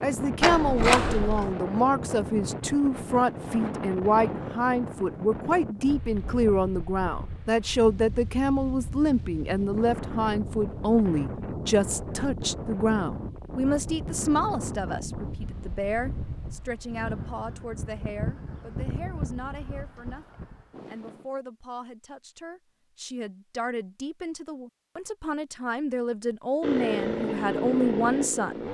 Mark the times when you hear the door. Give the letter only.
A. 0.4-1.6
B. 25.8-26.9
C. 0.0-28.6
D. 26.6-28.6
A.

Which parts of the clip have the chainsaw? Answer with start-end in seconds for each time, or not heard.
26.6-28.6.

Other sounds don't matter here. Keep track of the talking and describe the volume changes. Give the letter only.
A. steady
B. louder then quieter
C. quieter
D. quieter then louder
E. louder
D.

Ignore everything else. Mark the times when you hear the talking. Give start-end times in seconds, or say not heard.
0.0-28.6.